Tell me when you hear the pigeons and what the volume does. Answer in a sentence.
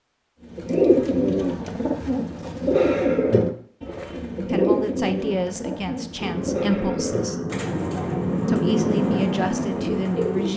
The pigeons can be heard from 0.5 to 10.5 s, getting quieter.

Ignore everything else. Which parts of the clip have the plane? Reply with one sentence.
You can hear the plane from 6.2 to 10.5 s.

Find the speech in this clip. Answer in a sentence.
The speech can be heard from 4.3 to 7.4 s and from 8.4 to 10.5 s.